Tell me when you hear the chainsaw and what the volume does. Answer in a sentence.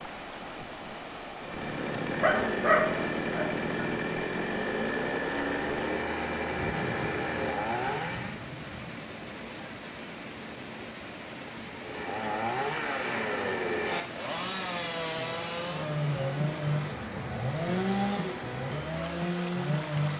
You can hear the chainsaw from 1.4 to 8.4 s, at a steady volume; and from 11.8 to 20.1 s, at a steady volume.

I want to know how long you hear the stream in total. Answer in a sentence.
The stream can be heard for 20 seconds in total.